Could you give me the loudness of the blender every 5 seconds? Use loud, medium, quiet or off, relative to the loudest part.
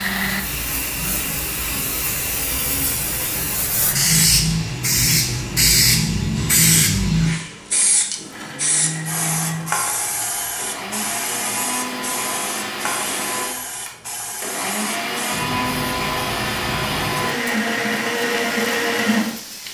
medium, medium, medium, loud.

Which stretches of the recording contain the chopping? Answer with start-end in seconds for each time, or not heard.
not heard.